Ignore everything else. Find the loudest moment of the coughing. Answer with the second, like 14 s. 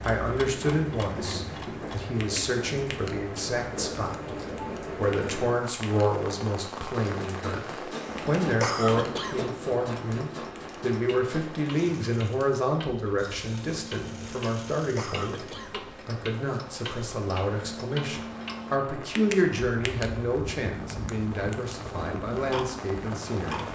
9 s.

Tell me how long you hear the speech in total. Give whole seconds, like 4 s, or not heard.
24 s.